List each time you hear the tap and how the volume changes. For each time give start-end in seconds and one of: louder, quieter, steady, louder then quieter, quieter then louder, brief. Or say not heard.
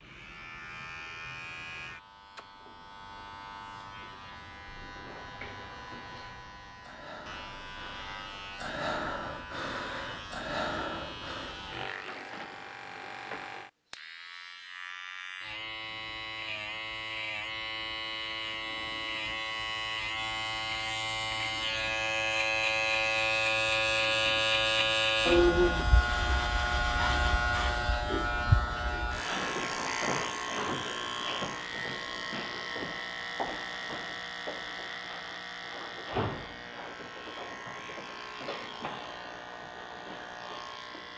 not heard.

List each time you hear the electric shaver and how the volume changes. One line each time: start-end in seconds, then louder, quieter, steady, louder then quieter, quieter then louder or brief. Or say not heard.
0.0-41.1 louder then quieter.